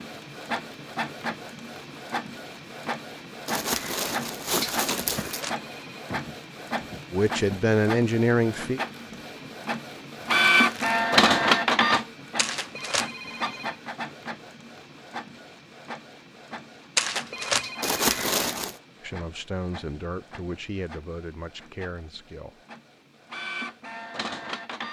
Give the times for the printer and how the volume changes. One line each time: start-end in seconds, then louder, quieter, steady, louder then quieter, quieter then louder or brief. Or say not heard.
0.0-24.8 louder then quieter.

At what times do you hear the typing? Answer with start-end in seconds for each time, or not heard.
not heard.